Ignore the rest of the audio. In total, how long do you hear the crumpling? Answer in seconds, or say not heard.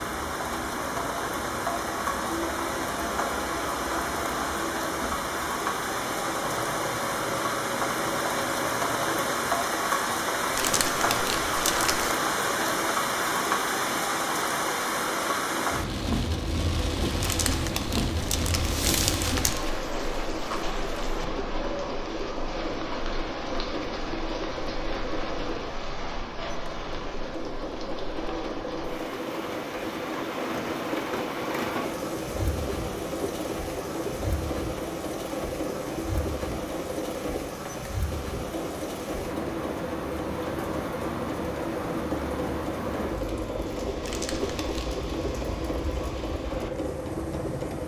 5 s.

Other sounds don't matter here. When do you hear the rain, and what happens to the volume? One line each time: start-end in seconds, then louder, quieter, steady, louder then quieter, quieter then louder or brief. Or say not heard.
0.0-47.8 quieter.